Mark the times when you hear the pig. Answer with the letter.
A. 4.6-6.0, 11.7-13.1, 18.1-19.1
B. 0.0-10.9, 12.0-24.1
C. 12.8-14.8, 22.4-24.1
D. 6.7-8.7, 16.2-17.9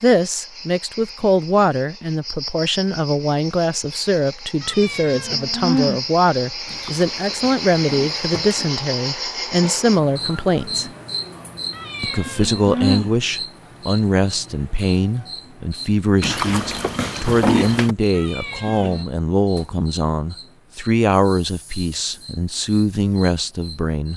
D.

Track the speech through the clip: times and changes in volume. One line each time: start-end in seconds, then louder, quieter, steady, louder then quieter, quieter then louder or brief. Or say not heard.
0.0-10.9 steady
12.0-24.1 steady.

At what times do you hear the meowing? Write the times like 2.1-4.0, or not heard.
4.6-6.0, 11.7-13.1, 18.1-19.1.